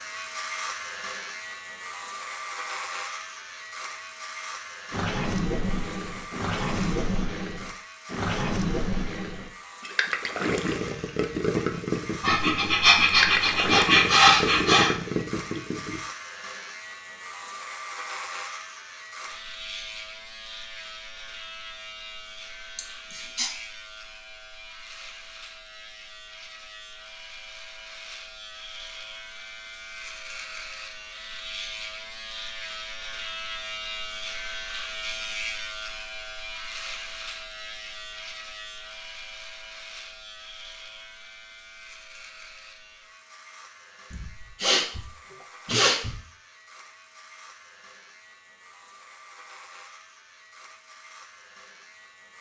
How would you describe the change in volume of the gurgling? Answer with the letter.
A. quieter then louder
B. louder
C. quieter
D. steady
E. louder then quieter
D.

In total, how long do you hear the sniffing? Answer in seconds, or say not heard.
5 s.